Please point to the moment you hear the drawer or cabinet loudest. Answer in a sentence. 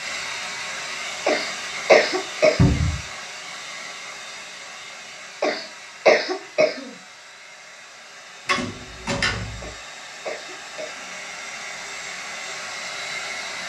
The volume of the drawer or cabinet peaks at 3 seconds.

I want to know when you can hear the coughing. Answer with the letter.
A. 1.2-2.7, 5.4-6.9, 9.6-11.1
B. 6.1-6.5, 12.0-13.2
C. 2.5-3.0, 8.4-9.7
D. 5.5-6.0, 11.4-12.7
A.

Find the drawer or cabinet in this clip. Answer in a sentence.
You can hear the drawer or cabinet from 2.5 to 3.0 s and from 8.4 to 9.7 s.